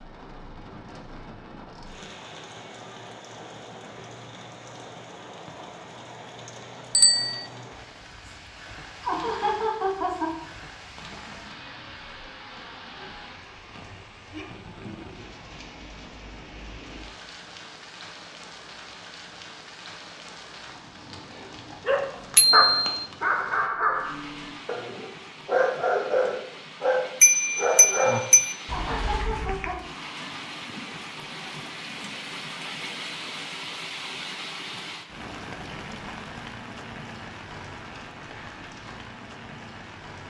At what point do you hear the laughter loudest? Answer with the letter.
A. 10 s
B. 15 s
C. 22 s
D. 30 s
A.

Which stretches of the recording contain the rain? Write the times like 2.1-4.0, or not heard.
0.0-40.2.